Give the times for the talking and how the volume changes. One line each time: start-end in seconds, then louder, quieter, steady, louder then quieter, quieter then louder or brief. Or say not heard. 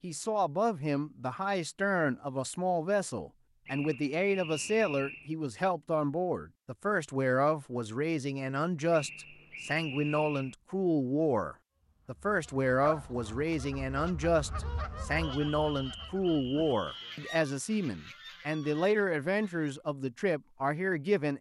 0.0-21.3 steady.